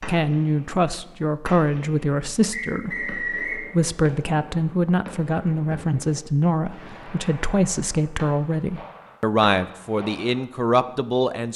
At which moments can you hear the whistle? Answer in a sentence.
You can hear the whistle from 2.5 to 3.6 s.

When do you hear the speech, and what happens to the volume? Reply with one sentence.
The speech can be heard from 0.1 to 11.5 s, at a steady volume.